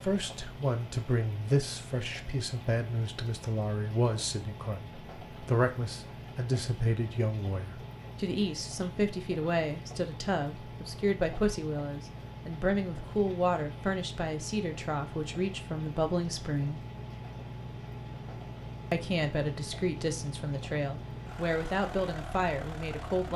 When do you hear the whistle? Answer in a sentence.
You can't hear the whistle here.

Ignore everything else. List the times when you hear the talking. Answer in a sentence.
The talking can be heard from 0.0 to 16.8 s and from 18.9 to 23.3 s.